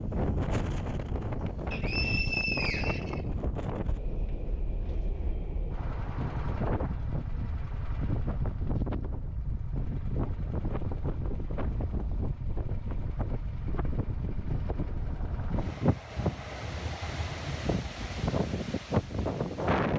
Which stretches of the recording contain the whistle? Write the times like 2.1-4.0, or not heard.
1.7-3.2.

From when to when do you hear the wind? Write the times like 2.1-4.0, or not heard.
0.0-19.9.